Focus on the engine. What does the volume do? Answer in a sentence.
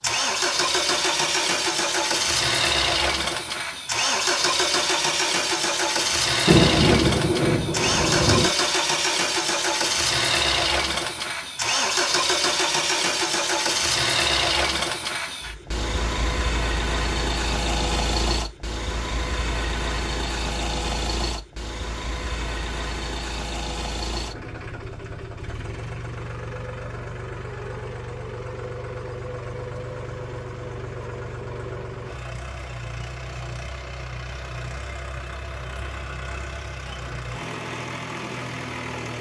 The volume of the engine goes down.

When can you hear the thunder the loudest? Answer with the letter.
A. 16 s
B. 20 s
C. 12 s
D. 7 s
D.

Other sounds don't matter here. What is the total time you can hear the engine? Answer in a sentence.
You can hear the engine for 39 seconds altogether.